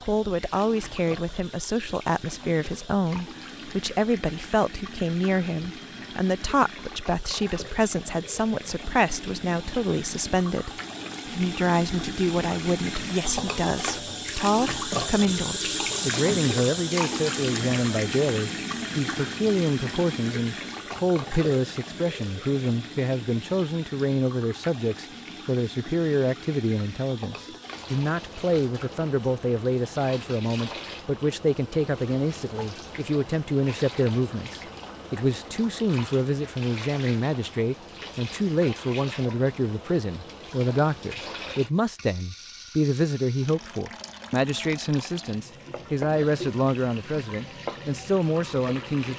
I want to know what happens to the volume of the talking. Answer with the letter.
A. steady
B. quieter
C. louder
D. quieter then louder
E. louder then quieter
A.